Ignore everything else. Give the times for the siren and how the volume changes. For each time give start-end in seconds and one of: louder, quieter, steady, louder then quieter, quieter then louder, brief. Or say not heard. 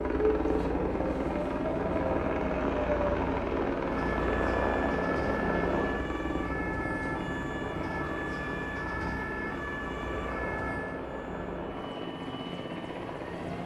0.0-13.4 quieter.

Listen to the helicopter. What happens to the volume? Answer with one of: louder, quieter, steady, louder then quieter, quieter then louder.
quieter.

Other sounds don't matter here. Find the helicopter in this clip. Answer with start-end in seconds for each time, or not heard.
0.0-13.6.